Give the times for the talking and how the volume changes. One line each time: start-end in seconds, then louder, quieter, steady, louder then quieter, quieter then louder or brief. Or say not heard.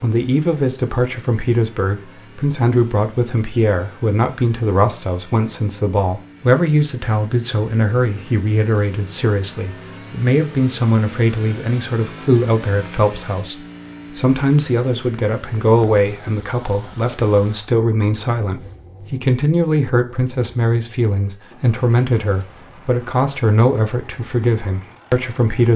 0.0-25.7 steady.